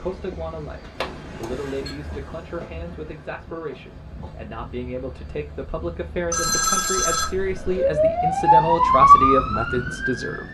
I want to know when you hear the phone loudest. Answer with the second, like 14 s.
7 s.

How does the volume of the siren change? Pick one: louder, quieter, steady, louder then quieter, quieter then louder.
louder then quieter.